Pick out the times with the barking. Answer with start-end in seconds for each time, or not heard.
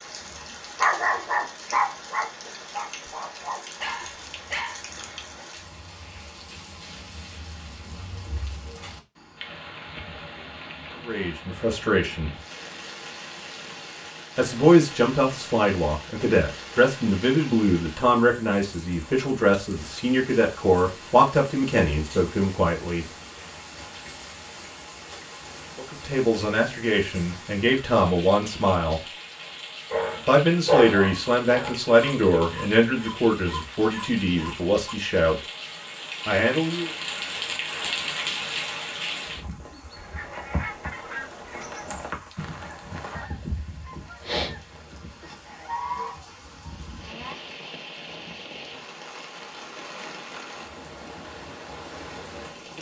0.8-5.5, 29.9-35.0.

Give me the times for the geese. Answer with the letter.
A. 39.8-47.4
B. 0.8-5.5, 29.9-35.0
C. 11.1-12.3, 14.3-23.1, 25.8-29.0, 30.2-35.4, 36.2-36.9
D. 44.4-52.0
A.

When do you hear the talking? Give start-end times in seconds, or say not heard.
11.1-12.3, 14.3-23.1, 25.8-29.0, 30.2-35.4, 36.2-36.9.